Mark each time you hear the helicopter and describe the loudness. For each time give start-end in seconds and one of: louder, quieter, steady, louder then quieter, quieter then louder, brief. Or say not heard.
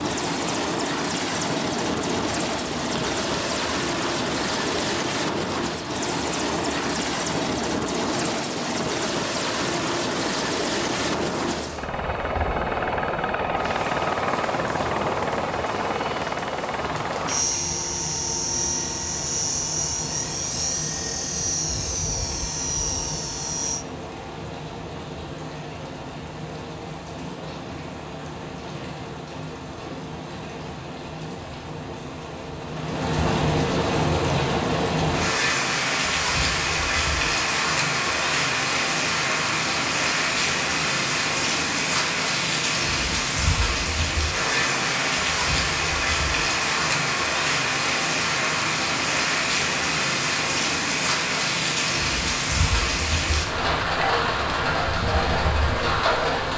0.0-23.9 steady.